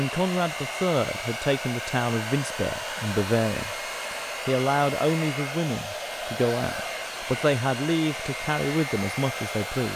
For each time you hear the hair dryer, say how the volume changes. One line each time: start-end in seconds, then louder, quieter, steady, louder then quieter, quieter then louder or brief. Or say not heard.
0.0-9.9 steady.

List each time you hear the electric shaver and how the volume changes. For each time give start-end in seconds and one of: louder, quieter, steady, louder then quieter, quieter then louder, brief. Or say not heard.
not heard.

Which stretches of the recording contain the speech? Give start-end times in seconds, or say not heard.
0.0-3.8, 4.5-9.9.